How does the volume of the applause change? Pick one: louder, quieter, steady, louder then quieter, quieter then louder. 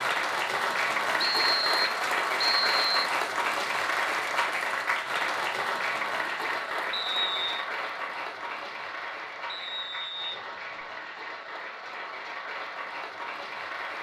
quieter.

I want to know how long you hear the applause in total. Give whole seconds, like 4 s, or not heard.
14 s.